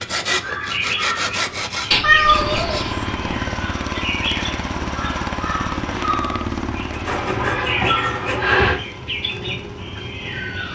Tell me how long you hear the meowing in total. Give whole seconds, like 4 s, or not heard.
3 s.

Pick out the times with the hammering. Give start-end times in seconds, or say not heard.
not heard.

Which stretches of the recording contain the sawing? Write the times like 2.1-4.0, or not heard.
0.0-2.9, 6.9-8.6.